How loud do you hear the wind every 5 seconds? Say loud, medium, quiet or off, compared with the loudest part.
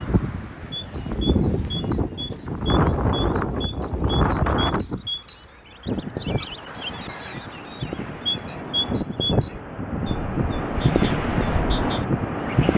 loud, medium, loud.